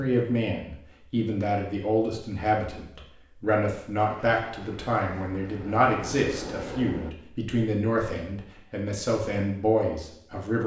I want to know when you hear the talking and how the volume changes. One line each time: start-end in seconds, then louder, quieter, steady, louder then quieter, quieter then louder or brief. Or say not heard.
0.0-10.6 steady.